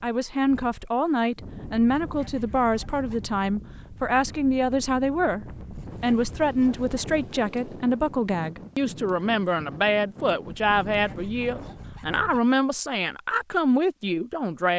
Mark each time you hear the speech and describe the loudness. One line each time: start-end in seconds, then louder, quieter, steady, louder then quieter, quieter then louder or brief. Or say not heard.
0.0-14.7 steady.